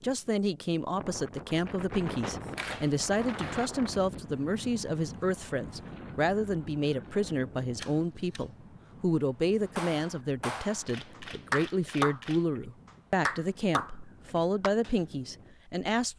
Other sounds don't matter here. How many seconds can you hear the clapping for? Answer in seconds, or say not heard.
5 s.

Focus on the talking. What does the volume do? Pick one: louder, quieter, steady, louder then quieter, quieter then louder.
steady.